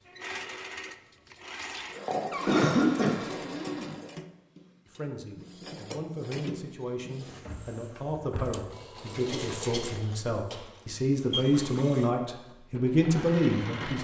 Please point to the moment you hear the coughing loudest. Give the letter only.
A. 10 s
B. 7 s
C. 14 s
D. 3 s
D.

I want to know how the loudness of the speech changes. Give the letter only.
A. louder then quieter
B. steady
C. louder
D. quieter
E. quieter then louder
C.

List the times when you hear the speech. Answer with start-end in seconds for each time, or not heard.
4.8-13.9.